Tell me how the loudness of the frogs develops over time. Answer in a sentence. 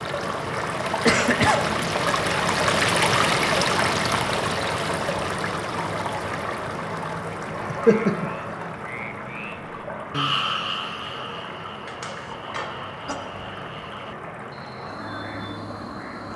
The loudness of the frogs goes down.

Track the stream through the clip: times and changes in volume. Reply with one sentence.
You can hear the stream from 0.0 to 16.3 s, getting quieter.